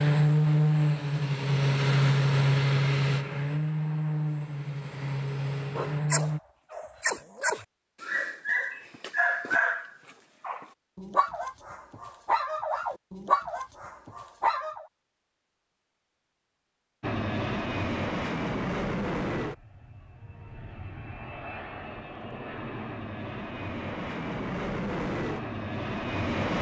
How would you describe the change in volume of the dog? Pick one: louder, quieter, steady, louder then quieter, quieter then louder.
steady.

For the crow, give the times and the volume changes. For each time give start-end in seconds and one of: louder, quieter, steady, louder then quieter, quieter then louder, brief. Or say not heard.
not heard.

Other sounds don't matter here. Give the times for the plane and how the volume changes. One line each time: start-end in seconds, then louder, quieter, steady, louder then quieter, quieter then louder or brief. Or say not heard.
0.0-6.4 quieter
17.0-26.5 quieter then louder.